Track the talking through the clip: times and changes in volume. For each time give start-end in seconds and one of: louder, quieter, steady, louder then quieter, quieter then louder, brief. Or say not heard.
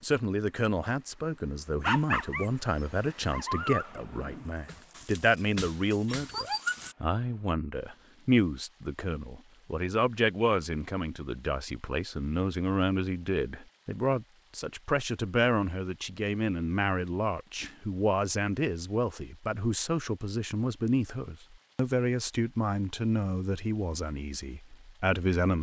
0.0-25.5 steady.